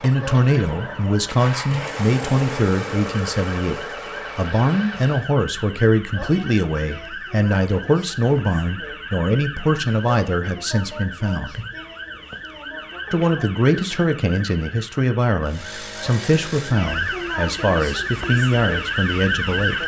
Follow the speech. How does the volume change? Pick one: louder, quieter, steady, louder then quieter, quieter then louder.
steady.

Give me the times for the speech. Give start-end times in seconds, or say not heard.
0.0-11.6, 13.1-19.8.